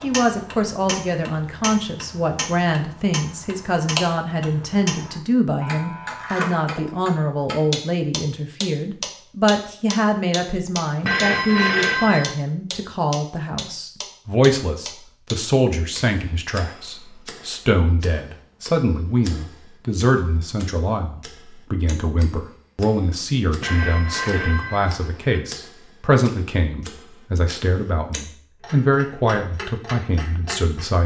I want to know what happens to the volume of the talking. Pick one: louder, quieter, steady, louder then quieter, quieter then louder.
steady.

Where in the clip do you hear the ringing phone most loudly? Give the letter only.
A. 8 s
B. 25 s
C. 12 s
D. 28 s
C.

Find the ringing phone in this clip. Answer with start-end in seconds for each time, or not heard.
11.0-12.3, 23.6-25.4.